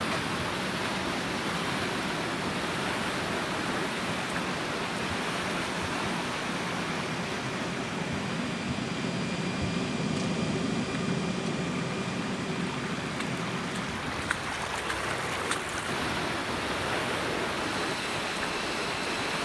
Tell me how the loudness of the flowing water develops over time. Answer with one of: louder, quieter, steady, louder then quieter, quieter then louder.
quieter then louder.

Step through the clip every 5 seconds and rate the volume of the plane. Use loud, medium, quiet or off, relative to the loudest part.
medium, loud, loud, medium.